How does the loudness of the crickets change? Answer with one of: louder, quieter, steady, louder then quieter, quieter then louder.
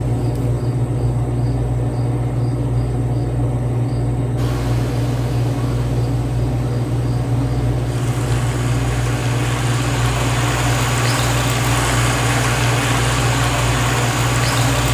steady.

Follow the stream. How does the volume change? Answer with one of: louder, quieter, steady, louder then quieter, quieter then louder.
louder.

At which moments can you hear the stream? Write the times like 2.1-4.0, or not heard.
4.3-14.8.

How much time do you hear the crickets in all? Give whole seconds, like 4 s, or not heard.
15 s.